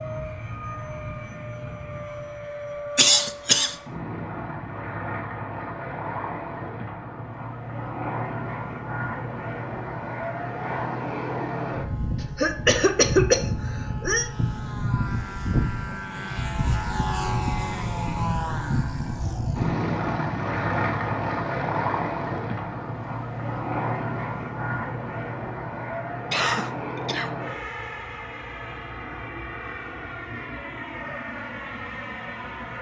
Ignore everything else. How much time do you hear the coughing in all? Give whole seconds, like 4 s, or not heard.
4 s.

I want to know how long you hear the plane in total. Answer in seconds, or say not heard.
33 s.